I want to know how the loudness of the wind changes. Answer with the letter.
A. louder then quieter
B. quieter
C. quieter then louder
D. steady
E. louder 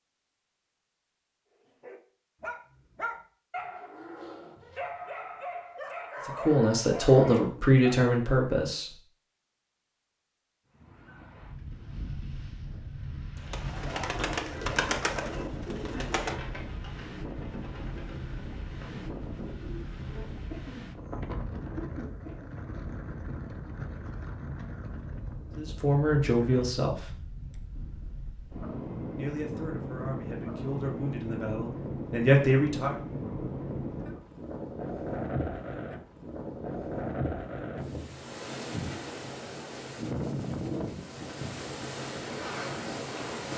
E.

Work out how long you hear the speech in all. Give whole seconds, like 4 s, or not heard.
8 s.